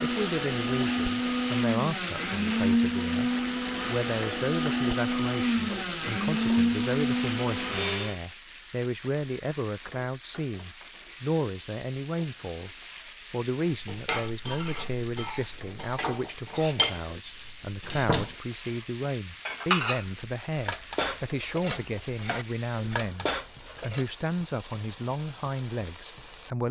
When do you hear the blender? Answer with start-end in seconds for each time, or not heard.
0.0-8.2.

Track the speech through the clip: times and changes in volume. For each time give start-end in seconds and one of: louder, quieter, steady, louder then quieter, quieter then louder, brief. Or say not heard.
0.0-26.6 steady.